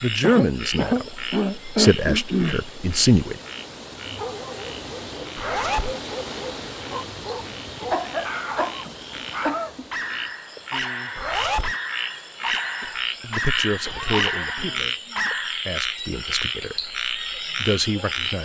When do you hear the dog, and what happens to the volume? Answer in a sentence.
You can hear the dog from 4.0 to 15.6 s, getting louder.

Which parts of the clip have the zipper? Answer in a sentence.
You can hear the zipper from 5.3 to 6.0 s and from 11.2 to 11.8 s.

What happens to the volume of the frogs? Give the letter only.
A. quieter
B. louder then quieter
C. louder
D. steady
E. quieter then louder
E.